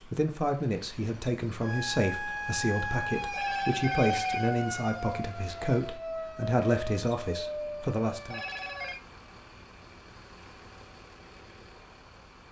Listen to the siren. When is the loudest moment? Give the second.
4 s.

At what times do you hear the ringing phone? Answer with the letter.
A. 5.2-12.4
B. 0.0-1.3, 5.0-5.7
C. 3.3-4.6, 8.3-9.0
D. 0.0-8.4
C.